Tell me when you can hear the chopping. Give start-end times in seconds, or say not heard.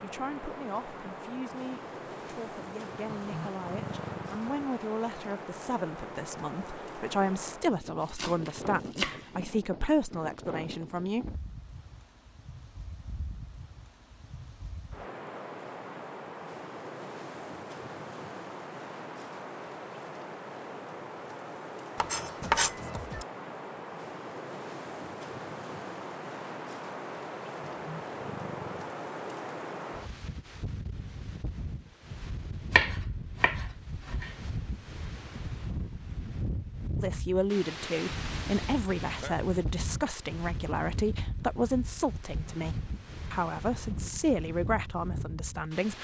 8.1-9.4, 21.9-23.2, 32.7-34.3.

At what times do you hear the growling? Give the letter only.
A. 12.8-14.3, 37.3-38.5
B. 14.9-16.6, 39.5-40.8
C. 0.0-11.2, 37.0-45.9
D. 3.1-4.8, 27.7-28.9
D.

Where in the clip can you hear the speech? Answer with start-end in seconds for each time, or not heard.
0.0-11.2, 37.0-45.9.